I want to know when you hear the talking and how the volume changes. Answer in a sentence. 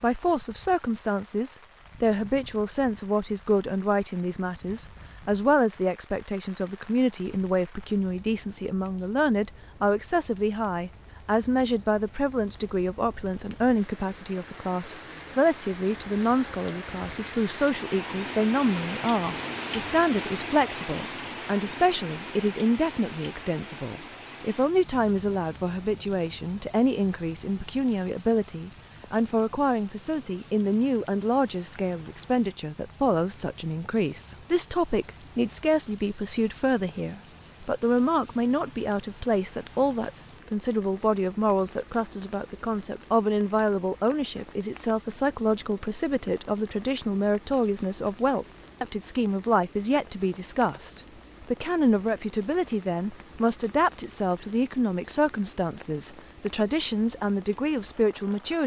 You can hear the talking from 0.0 to 58.6 s, at a steady volume.